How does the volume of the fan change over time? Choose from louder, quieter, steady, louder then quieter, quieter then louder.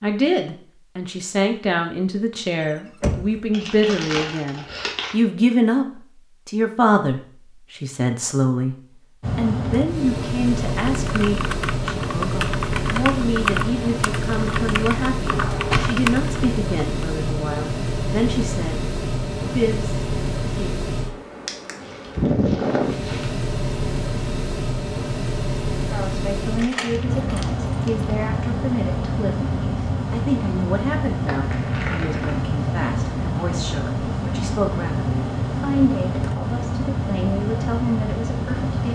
steady.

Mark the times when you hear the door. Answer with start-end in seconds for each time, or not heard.
2.6-3.4, 15.3-16.0, 26.6-27.9.